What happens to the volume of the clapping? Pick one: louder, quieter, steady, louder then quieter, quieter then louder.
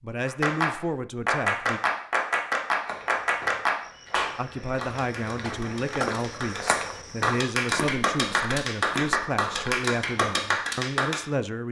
quieter then louder.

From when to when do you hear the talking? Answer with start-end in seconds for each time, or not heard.
0.0-1.8, 4.3-11.6.